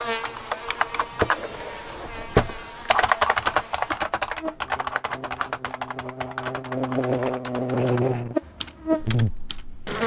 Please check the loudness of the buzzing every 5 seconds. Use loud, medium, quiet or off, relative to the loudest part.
medium, loud.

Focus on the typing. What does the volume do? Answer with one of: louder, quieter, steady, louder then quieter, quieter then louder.
louder then quieter.